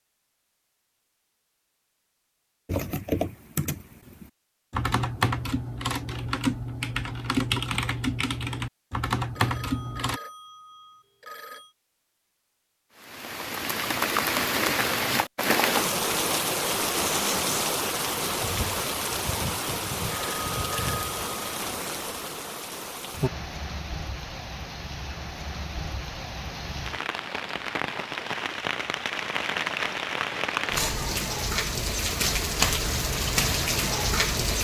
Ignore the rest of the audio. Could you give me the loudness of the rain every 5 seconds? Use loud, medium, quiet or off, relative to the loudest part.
off, off, loud, loud, medium, medium, loud.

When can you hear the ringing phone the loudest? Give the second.
21 s.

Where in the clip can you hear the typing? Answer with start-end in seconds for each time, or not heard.
2.6-10.2.